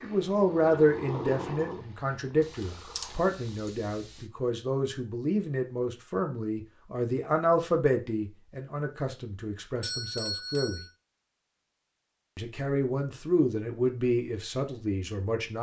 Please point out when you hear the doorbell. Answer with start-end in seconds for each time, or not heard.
9.8-10.9.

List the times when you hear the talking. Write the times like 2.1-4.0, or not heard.
0.0-10.8, 12.3-15.5.